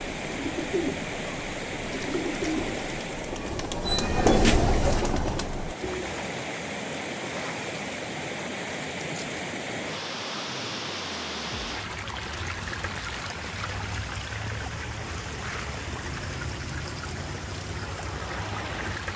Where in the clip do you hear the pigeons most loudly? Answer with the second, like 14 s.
4 s.